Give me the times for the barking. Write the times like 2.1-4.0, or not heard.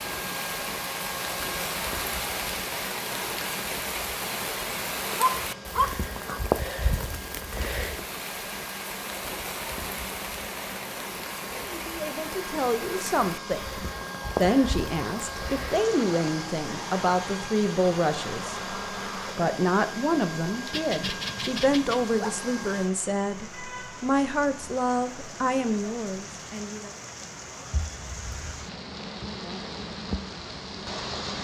5.2-6.5, 20.7-22.3.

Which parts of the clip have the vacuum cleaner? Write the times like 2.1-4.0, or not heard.
0.0-22.9.